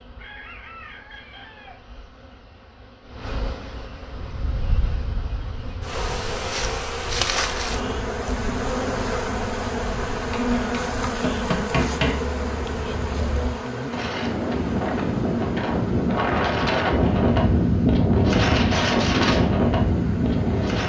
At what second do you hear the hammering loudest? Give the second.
12 s.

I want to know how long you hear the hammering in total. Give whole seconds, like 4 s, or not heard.
2 s.